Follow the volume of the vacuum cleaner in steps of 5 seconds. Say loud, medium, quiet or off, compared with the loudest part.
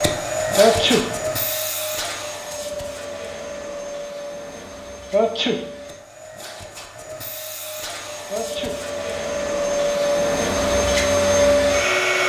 medium, medium, loud.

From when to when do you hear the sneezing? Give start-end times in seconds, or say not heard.
0.6-1.1, 5.1-5.6, 8.3-8.8.